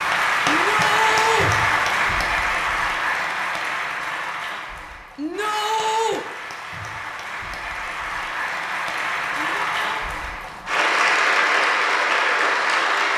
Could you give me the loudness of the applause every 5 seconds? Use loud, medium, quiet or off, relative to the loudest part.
loud, medium, loud.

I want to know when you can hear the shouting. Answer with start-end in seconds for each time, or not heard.
0.5-1.5, 5.2-6.2, 9.3-10.1.